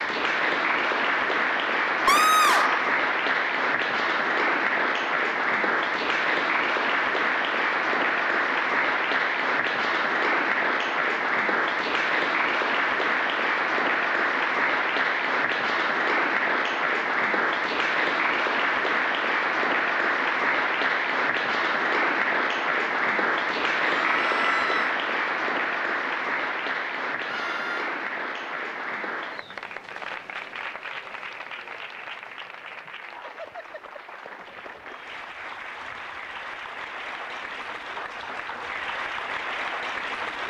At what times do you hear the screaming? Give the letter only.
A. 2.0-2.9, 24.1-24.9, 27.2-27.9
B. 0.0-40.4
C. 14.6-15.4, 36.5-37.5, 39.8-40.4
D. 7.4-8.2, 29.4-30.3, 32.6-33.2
A.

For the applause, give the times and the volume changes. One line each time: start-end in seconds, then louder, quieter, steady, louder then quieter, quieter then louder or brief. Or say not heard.
0.0-40.4 quieter.